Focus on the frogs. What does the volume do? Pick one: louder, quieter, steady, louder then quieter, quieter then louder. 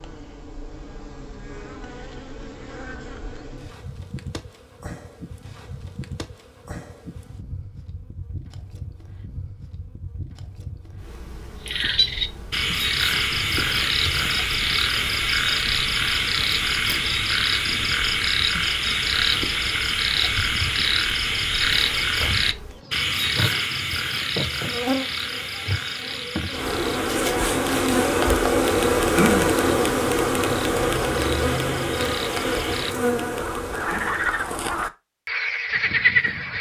quieter then louder.